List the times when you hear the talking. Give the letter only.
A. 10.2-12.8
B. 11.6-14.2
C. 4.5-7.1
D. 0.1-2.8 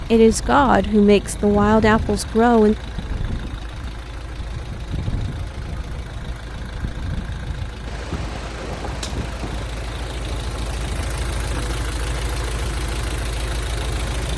D.